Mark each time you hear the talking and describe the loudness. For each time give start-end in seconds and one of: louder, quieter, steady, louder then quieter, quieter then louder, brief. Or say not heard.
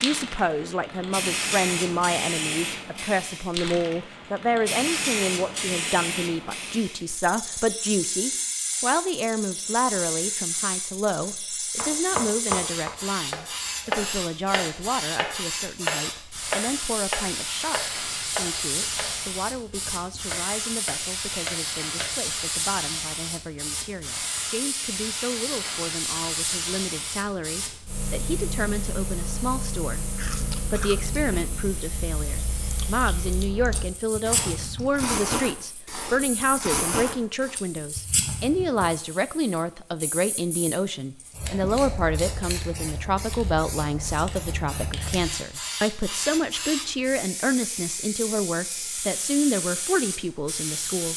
0.0-51.1 quieter then louder.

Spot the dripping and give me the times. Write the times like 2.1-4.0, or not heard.
not heard.